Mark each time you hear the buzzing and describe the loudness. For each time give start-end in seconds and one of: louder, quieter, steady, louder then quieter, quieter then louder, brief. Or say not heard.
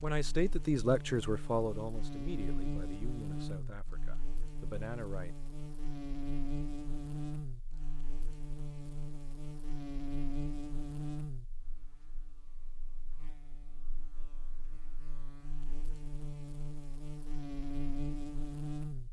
0.0-19.0 quieter then louder.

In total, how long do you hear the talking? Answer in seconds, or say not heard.
5 s.